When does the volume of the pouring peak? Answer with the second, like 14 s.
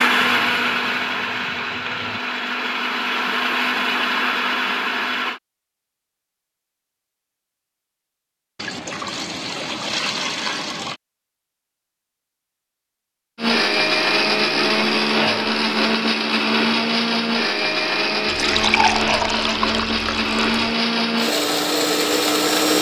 19 s.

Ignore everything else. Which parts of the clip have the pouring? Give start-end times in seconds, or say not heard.
0.1-2.2, 8.6-11.0, 18.2-20.8.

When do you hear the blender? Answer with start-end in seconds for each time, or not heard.
0.0-5.4, 13.3-22.7.